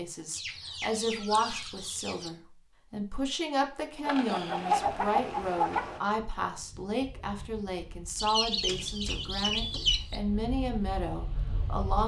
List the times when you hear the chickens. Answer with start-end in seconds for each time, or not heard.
0.3-2.3, 4.0-6.0, 8.2-10.2.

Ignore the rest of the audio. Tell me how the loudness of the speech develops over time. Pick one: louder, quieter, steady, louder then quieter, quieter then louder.
steady.